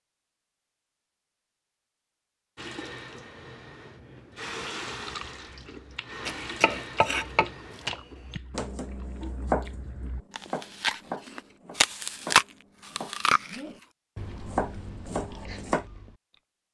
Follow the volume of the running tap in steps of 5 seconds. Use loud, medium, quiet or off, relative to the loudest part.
loud, loud, off, off.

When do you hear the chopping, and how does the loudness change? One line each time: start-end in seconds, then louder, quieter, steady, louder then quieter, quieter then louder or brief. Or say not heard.
6.2-15.8 quieter then louder.